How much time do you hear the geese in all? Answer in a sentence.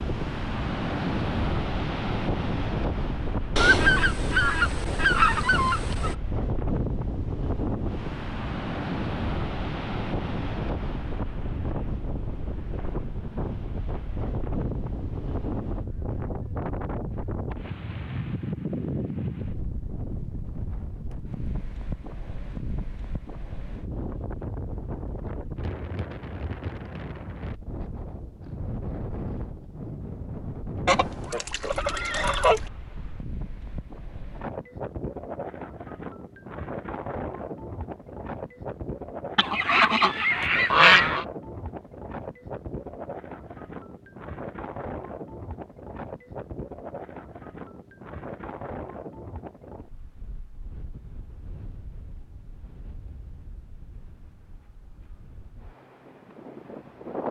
The geese can be heard for 6 seconds in total.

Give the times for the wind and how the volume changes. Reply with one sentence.
You can hear the wind from 0.0 to 57.2 s, getting quieter.